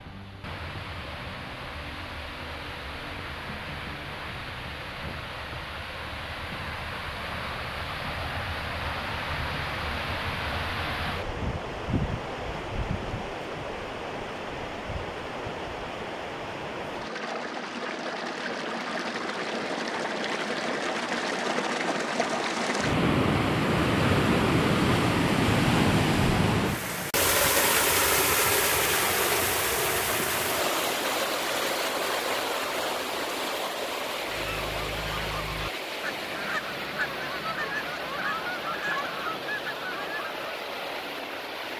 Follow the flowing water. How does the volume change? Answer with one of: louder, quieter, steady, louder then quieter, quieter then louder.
louder then quieter.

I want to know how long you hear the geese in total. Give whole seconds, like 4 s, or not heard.
6 s.